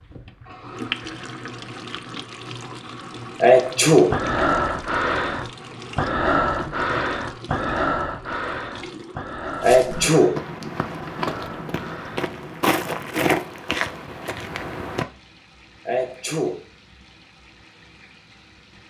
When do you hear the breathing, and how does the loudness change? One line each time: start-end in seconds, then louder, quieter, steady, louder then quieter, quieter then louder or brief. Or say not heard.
4.1-12.2 quieter.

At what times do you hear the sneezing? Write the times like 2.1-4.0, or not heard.
3.4-4.2, 9.6-10.3, 15.8-16.6.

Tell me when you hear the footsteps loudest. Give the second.
13 s.